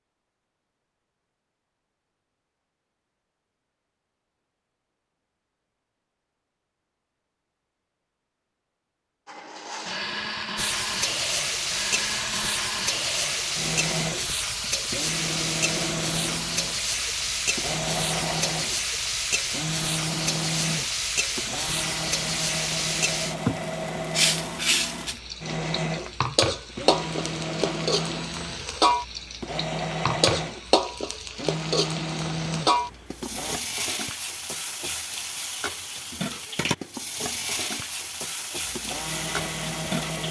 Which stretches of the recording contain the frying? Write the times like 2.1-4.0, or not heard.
10.6-40.2.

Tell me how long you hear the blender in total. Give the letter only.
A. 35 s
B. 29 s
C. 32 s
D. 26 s
D.